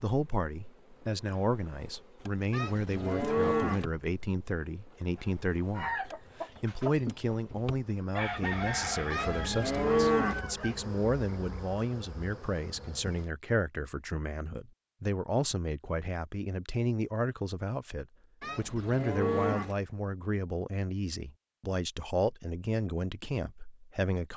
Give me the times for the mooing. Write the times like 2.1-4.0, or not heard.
2.5-3.9, 9.1-10.4, 18.4-19.8.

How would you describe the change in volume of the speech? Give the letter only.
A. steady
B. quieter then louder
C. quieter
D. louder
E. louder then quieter
A.